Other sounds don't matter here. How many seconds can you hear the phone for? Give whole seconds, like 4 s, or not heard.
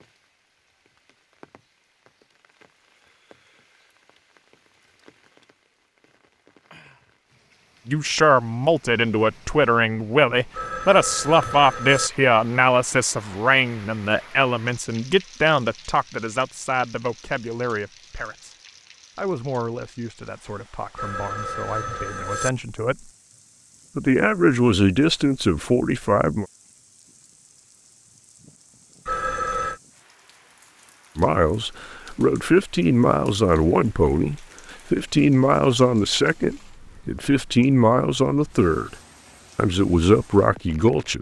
4 s.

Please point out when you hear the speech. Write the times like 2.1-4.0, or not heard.
7.8-18.6, 19.1-23.1, 23.9-26.4, 31.1-39.0, 39.5-41.1.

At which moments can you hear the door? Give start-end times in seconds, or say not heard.
not heard.